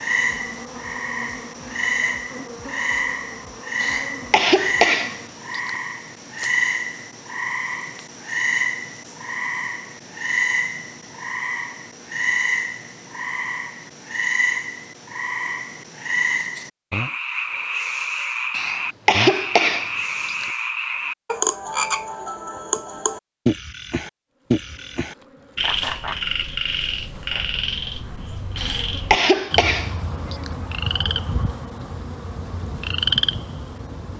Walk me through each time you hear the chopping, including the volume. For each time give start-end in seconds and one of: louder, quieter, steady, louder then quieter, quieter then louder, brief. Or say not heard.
not heard.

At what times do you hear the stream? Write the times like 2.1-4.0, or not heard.
not heard.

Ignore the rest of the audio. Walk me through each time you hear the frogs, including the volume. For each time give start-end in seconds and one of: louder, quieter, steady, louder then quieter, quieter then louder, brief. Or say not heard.
0.0-34.1 steady.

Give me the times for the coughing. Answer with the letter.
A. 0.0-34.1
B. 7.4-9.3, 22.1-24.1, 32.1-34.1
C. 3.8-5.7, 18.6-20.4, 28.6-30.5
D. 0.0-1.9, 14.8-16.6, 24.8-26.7
C.